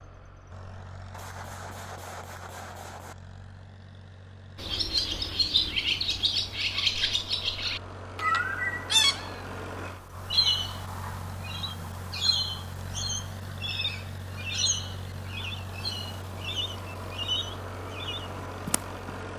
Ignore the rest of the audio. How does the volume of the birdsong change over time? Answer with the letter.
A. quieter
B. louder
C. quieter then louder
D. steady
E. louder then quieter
A.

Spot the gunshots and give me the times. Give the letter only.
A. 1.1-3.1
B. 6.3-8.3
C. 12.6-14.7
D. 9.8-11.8
A.